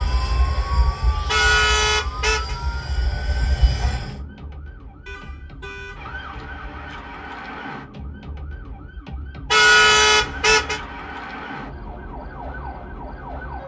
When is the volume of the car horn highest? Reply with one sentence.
The loudest moment of the car horn is at 10 seconds.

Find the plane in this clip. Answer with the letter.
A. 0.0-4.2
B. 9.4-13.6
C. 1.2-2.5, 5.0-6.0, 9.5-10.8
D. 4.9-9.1
A.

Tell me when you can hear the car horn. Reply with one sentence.
The car horn can be heard from 1.2 to 2.5 s, from 5.0 to 6.0 s and from 9.5 to 10.8 s.